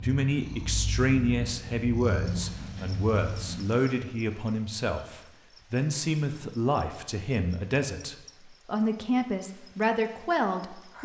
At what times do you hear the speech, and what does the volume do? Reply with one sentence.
You can hear the speech from 0.0 to 10.9 s, at a steady volume.